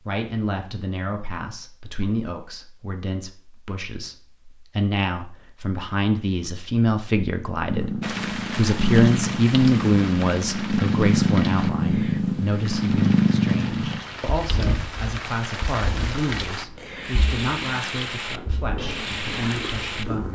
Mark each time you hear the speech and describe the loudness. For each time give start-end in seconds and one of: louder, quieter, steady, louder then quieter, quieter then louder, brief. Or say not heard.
0.0-20.3 louder then quieter.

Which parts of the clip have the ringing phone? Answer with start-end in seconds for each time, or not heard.
not heard.